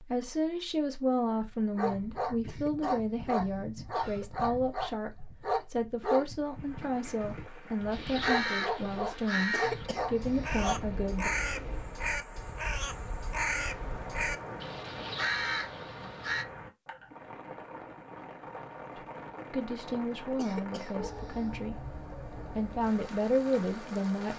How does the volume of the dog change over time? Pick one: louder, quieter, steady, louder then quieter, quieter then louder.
steady.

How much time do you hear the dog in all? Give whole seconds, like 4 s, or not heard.
10 s.